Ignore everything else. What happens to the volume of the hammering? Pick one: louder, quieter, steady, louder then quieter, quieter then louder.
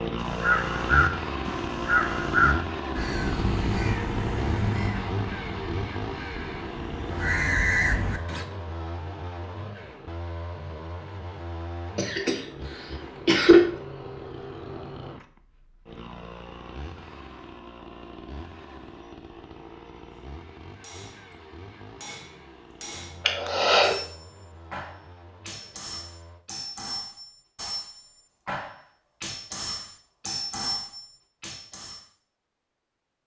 louder.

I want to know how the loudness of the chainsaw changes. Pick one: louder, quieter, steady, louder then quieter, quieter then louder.
quieter.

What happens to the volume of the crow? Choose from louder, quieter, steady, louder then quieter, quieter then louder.
quieter then louder.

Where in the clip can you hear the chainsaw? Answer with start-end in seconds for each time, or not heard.
0.0-26.4.